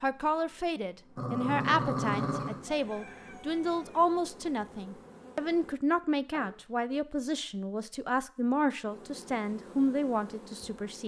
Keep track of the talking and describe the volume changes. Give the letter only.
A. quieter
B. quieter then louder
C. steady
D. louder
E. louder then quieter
C.